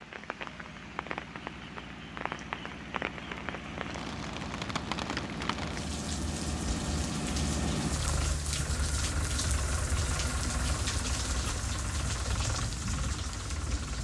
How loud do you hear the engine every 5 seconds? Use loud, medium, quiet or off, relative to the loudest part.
medium, loud, loud.